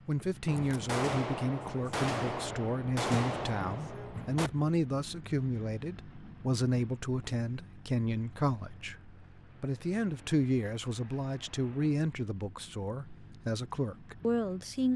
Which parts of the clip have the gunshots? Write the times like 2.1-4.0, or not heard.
0.5-4.5.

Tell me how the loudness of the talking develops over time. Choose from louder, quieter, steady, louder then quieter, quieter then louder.
steady.